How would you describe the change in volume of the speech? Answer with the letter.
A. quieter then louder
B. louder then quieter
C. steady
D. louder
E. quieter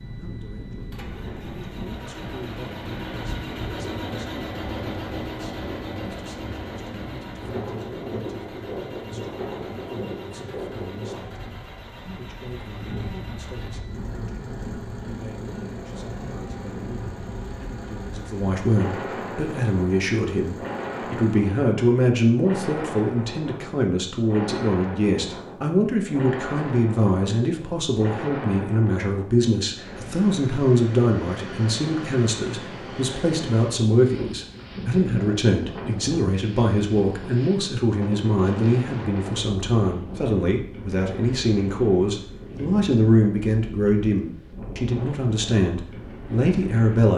D.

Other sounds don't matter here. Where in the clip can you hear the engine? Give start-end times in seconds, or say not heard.
0.0-21.4.